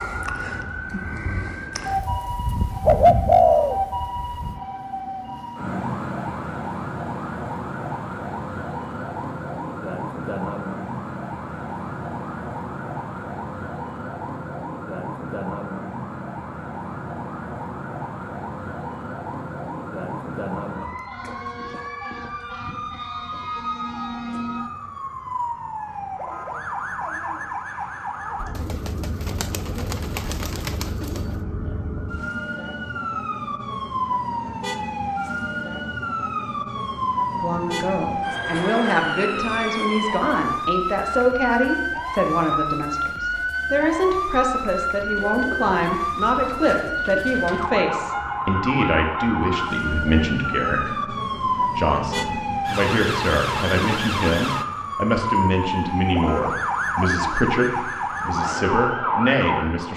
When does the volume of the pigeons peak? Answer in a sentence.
The loudest moment of the pigeons is at 3 seconds.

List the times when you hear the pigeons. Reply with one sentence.
The pigeons can be heard from 1.9 to 4.6 s, from 28.6 to 31.2 s and from 45.0 to 47.8 s.